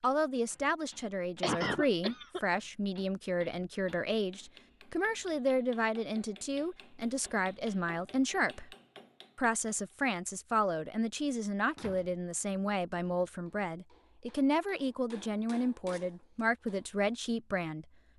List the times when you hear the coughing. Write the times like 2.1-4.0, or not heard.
1.4-2.4.